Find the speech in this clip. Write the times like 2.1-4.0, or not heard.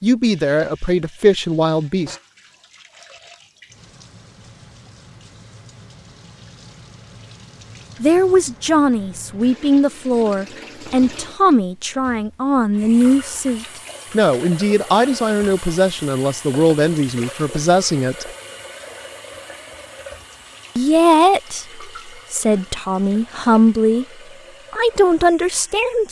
0.0-2.1, 8.0-18.3, 20.8-24.1, 24.7-26.0.